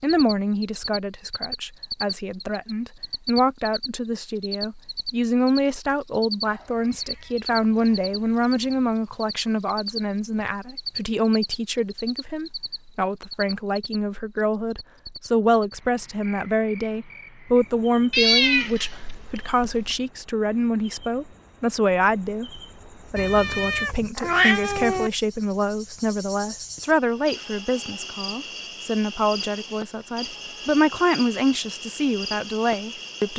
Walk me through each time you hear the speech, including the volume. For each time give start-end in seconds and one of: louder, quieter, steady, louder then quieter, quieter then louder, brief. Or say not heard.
0.0-33.3 steady.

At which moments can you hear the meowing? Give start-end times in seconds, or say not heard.
6.4-8.9, 18.1-20.0, 23.1-25.1.